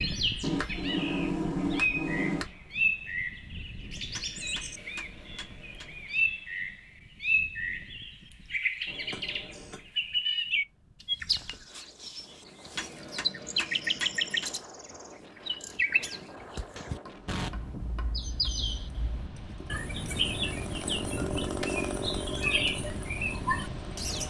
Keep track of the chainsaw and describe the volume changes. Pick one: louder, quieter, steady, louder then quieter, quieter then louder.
louder then quieter.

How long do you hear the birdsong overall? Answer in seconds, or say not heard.
24 s.